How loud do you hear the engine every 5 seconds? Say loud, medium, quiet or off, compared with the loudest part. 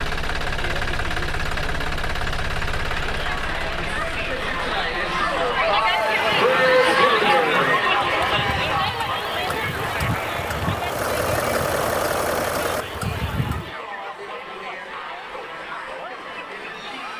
loud, medium, loud, off.